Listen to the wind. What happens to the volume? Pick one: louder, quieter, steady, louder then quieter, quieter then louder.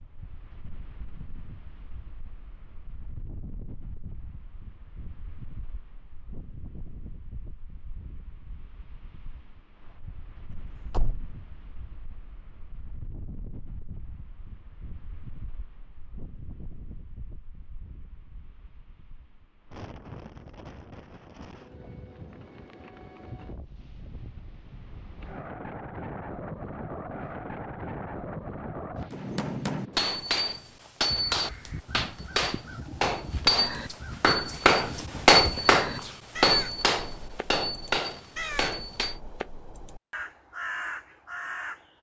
louder.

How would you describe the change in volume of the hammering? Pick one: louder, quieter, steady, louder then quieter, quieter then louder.
louder then quieter.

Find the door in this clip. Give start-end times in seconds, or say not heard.
10.9-11.3.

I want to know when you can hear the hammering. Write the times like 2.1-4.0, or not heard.
29.1-39.1.